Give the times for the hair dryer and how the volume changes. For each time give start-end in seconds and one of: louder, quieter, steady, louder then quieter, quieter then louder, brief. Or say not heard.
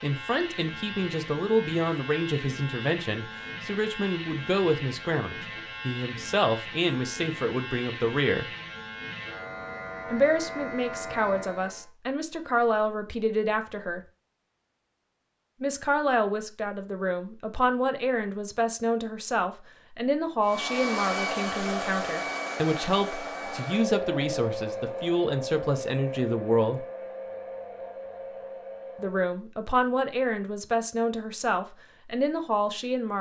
20.4-29.2 quieter.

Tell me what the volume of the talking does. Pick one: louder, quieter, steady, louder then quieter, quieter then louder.
steady.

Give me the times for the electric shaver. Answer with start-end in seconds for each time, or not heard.
0.0-11.8.